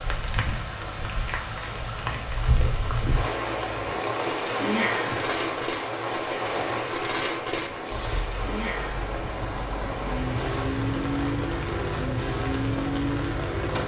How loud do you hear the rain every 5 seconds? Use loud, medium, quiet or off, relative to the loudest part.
loud, loud, medium.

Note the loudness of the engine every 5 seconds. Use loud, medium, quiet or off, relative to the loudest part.
medium, medium, loud.